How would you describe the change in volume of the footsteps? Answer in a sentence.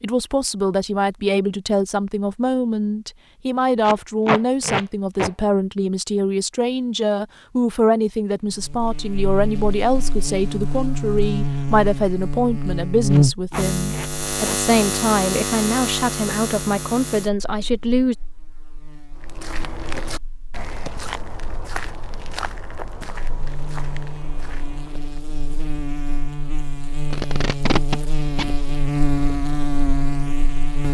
The volume of the footsteps goes down.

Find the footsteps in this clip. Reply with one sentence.
The footsteps can be heard from 19.1 to 25.2 s.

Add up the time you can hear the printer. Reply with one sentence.
The printer can't be heard in this clip.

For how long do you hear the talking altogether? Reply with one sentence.
The talking can be heard for 18 seconds in total.